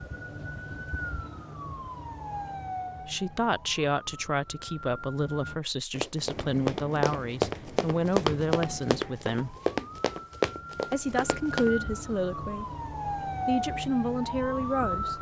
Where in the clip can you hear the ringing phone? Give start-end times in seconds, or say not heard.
not heard.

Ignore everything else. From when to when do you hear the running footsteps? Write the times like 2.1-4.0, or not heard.
5.9-11.7.